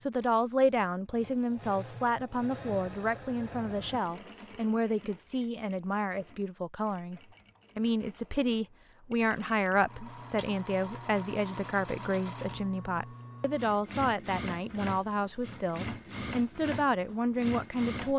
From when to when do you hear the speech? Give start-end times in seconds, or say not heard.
0.0-18.1.